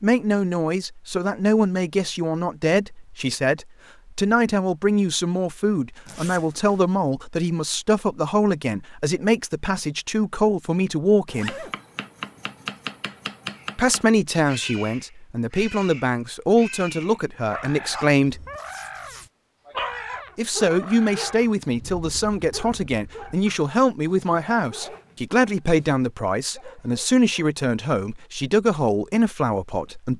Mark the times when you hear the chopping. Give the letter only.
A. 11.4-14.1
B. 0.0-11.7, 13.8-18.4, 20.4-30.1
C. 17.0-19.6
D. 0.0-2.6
A.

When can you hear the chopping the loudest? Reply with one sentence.
The loudest moment of the chopping is at 13 seconds.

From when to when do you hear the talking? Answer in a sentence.
You can hear the talking from 0.0 to 11.7 s, from 13.8 to 18.4 s and from 20.4 to 30.1 s.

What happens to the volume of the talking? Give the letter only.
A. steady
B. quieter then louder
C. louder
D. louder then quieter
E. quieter
A.